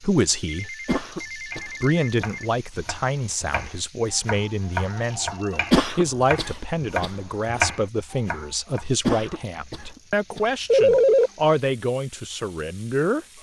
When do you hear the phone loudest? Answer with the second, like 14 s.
11 s.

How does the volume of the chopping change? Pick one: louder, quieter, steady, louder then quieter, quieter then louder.
louder.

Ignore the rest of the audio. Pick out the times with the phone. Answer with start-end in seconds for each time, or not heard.
0.5-2.5, 4.9-5.7, 10.7-11.3.